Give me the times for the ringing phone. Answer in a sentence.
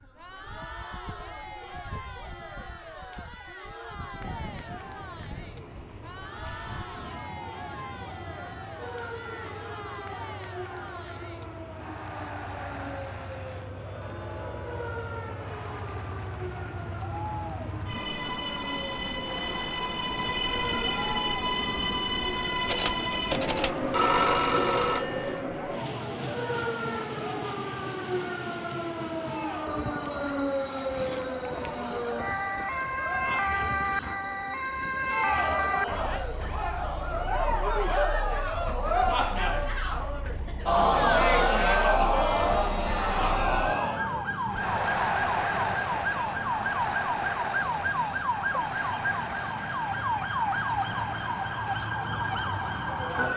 The ringing phone can be heard from 22.6 to 25.4 s.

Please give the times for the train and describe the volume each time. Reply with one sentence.
You can hear the train from 4.4 to 37.8 s, getting louder then quieter.